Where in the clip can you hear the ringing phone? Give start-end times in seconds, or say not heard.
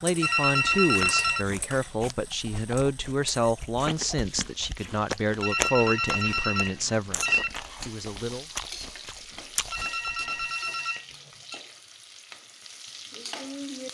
0.2-1.4, 5.4-7.5, 9.7-11.6.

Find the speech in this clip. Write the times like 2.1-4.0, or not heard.
0.0-8.5.